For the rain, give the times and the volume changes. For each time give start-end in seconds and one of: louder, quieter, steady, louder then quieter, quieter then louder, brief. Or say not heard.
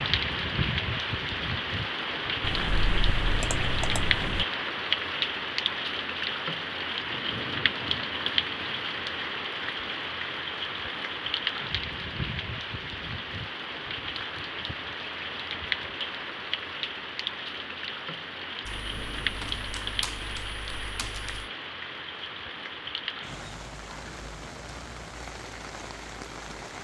0.0-26.7 quieter.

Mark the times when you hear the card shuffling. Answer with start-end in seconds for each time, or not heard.
not heard.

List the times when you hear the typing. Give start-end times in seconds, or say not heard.
2.4-4.5, 18.6-21.4.